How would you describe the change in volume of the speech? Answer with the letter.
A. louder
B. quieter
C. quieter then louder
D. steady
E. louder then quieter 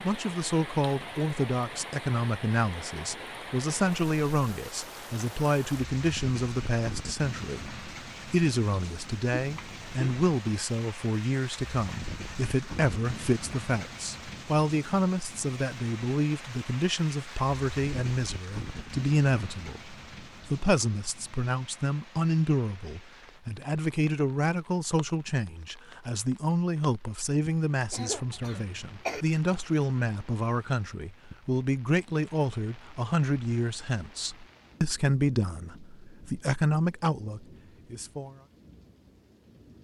D.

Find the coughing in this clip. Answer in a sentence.
The coughing can be heard from 9.3 to 10.2 s and from 27.9 to 29.2 s.